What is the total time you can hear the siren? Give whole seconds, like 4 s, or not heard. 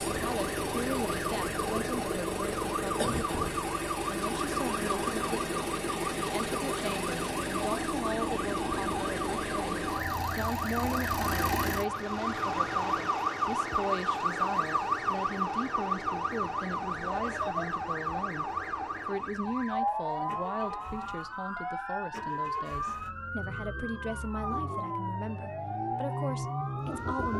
27 s.